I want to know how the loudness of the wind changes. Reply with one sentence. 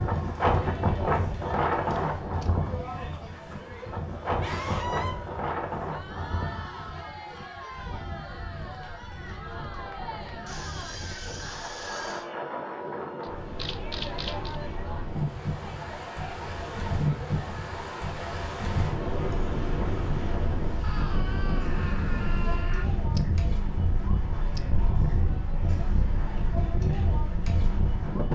The volume of the wind goes down, then up.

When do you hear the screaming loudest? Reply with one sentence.
The loudest moment of the screaming is at 5 seconds.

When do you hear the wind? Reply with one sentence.
You can hear the wind from 0.0 to 28.3 s.